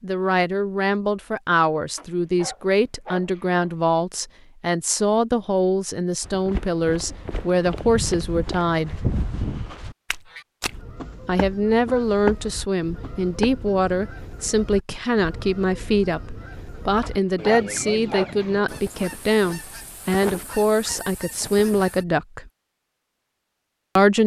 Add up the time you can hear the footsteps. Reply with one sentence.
You can hear the footsteps for 7 seconds altogether.